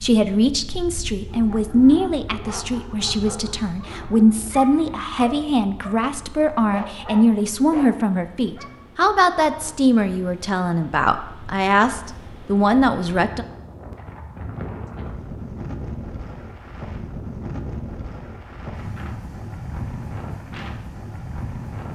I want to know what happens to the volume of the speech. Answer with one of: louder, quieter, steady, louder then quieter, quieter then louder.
steady.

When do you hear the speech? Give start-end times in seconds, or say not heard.
0.0-13.4.